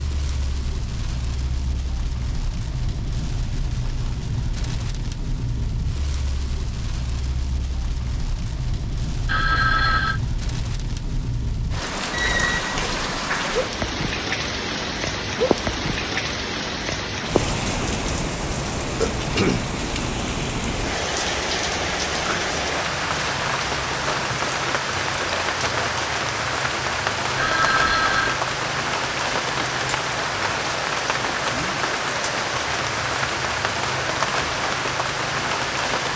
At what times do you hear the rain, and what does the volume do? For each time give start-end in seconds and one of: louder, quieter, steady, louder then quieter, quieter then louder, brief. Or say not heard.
0.0-36.1 louder.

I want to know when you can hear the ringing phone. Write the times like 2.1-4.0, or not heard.
9.2-10.2, 27.4-28.4.